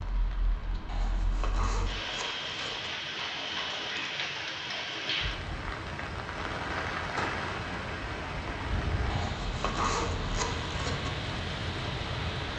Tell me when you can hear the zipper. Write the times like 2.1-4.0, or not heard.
0.8-2.9, 9.1-11.1.